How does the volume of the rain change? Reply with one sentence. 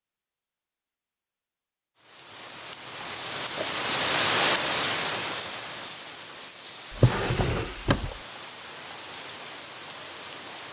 The loudness of the rain goes up, then down.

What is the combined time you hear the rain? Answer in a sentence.
The rain can be heard for 9 seconds in total.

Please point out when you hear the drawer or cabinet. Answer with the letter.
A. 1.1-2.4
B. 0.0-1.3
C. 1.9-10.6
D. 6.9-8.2
D.